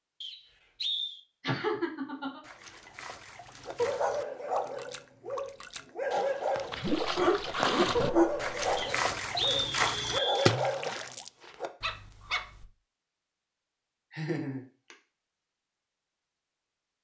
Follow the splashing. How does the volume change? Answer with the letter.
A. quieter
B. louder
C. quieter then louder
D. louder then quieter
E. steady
B.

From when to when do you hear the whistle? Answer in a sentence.
The whistle can be heard from 0.2 to 1.2 s and from 8.8 to 10.6 s.